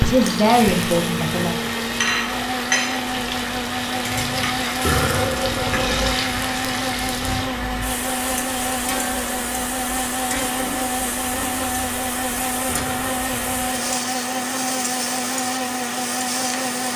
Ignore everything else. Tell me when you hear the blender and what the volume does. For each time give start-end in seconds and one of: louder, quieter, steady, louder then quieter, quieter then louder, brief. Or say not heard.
0.0-16.9 steady.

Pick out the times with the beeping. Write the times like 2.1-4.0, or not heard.
not heard.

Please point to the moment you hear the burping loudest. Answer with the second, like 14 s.
5 s.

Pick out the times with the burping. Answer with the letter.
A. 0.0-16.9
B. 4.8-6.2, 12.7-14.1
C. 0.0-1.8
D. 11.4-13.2
B.